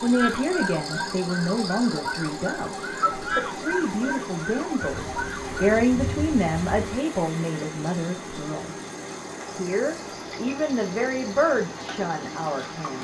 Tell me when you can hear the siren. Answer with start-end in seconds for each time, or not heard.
0.0-5.5.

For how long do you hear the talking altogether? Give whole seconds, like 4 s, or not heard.
12 s.